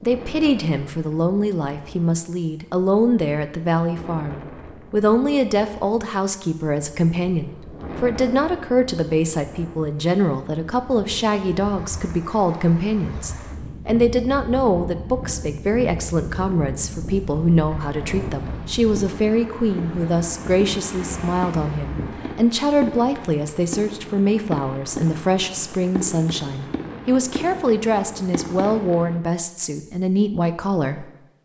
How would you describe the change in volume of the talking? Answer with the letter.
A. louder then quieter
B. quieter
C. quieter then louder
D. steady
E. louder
D.